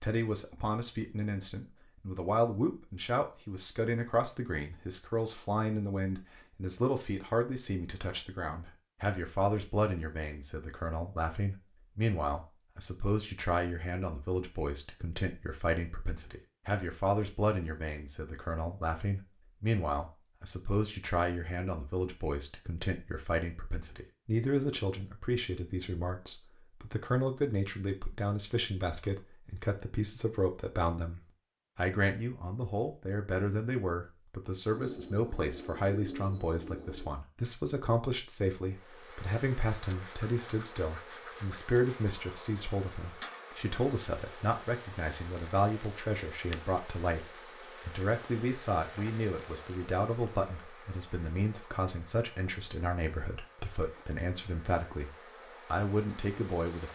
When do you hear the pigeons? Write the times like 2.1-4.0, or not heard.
34.7-37.1.